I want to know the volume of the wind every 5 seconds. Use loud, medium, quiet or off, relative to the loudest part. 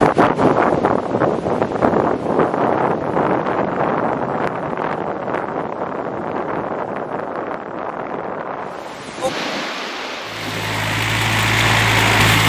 loud, medium, medium.